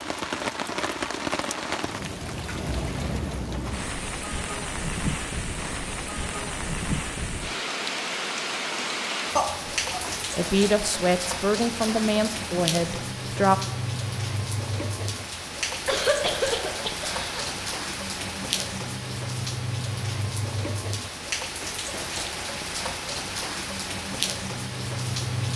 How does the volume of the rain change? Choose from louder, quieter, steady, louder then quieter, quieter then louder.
steady.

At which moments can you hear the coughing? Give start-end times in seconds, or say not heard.
9.3-10.2, 15.8-17.4.